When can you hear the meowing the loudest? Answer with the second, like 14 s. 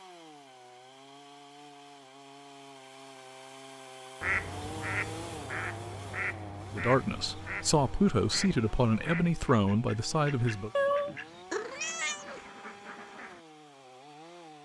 11 s.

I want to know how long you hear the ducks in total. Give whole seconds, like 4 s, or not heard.
9 s.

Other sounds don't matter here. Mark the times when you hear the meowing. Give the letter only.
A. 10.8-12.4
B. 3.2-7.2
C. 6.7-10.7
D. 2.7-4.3
A.